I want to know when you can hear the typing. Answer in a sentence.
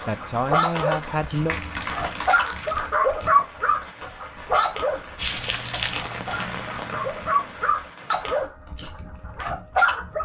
The typing can be heard from 0.7 to 2.3 s and from 5.3 to 7.1 s.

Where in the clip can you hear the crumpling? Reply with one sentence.
The crumpling can be heard from 1.5 to 2.9 s and from 5.2 to 6.0 s.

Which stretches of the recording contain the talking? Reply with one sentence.
The talking can be heard from 0.0 to 1.6 s.